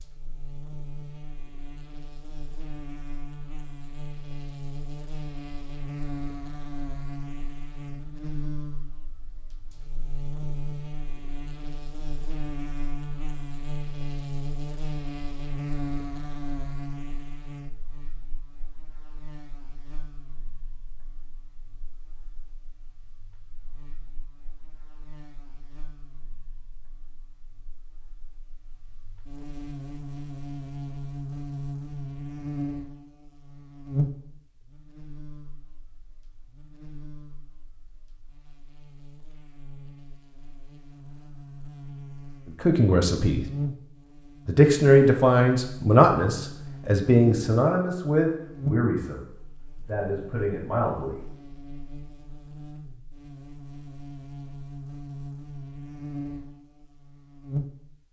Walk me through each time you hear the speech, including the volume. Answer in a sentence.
The speech can be heard briefly from 42.6 to 43.5 s; and from 44.5 to 51.2 s, getting quieter.